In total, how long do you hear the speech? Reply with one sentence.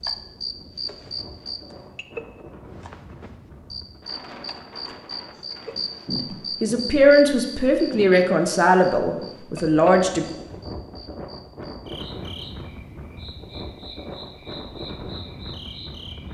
You can hear the speech for 4 seconds altogether.